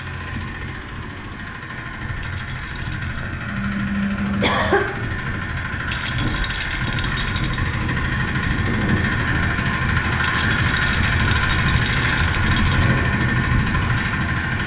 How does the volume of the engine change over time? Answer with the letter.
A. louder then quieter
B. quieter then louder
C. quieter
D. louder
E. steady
D.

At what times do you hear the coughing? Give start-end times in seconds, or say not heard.
3.5-4.9.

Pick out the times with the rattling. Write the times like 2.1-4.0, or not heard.
2.2-3.3, 5.8-7.7, 10.2-12.9.